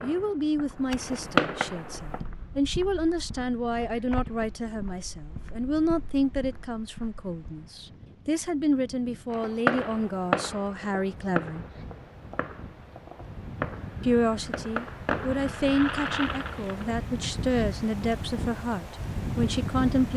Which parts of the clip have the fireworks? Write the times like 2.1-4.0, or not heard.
0.0-2.2, 9.3-16.9.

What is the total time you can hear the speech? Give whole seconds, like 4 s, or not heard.
18 s.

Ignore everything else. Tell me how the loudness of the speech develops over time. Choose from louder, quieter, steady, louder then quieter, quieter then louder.
steady.